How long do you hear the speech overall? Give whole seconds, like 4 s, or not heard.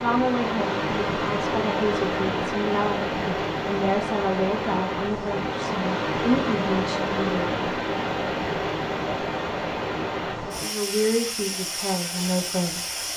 10 s.